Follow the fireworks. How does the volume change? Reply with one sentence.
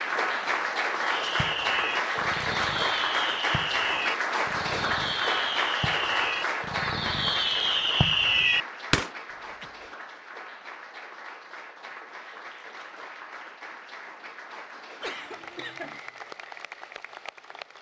The volume of the fireworks goes up.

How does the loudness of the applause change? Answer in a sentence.
The volume of the applause goes down.